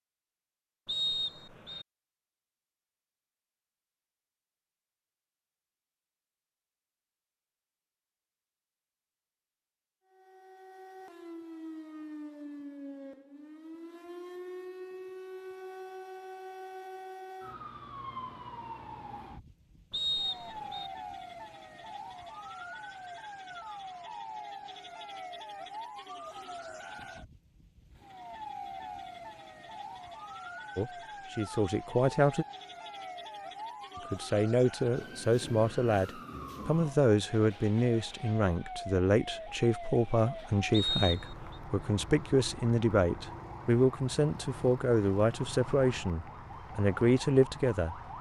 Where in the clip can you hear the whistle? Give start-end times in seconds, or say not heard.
0.8-1.9, 19.9-20.9, 40.7-41.5.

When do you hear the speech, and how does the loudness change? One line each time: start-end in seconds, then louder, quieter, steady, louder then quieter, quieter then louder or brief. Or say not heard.
30.8-32.5 brief
34.1-48.0 steady.